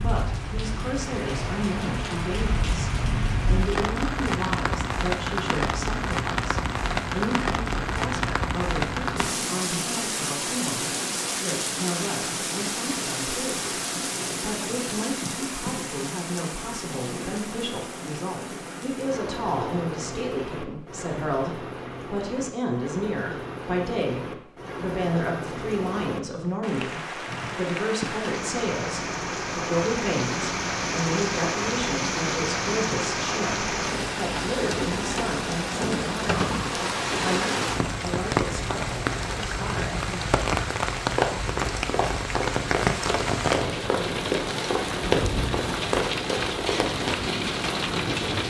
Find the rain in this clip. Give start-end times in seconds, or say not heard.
0.0-48.4.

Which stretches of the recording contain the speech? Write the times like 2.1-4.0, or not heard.
0.0-2.9, 3.5-36.4, 37.2-40.2.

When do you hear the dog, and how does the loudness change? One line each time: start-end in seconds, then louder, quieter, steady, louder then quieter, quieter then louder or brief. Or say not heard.
not heard.